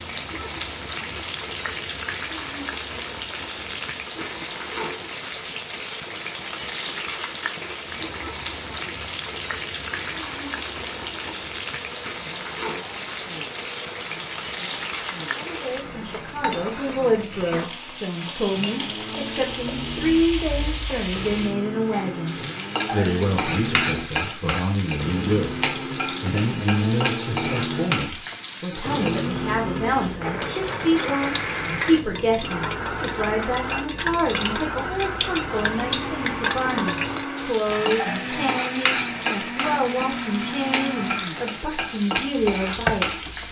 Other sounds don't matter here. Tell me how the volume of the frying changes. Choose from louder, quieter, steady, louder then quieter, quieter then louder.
steady.